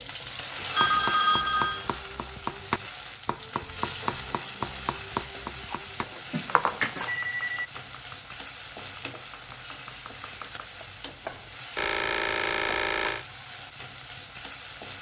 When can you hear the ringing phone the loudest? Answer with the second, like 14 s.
1 s.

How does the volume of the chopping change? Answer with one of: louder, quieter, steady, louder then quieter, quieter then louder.
quieter.